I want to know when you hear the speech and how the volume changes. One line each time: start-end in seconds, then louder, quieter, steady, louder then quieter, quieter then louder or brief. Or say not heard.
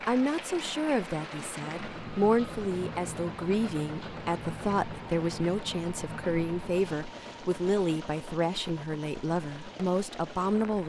0.1-10.8 steady.